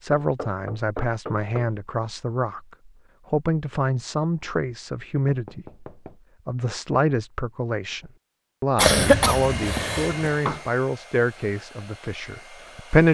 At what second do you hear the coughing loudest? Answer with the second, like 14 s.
9 s.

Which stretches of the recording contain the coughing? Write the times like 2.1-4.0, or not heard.
8.8-10.3.